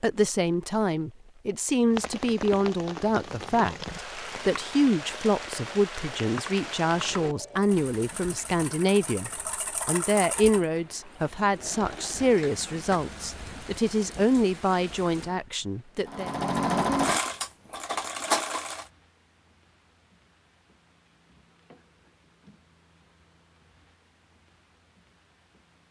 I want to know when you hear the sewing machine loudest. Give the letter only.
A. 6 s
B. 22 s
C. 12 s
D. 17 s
D.